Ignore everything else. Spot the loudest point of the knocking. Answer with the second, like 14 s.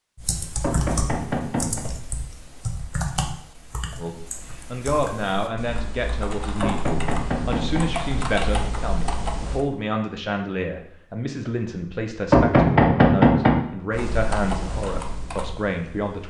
13 s.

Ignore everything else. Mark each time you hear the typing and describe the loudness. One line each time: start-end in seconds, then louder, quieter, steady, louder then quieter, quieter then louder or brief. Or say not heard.
0.1-9.7 quieter then louder
13.9-16.2 brief.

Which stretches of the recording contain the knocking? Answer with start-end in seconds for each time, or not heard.
0.6-1.9, 6.6-7.8, 12.3-13.6.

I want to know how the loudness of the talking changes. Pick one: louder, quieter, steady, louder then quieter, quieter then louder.
steady.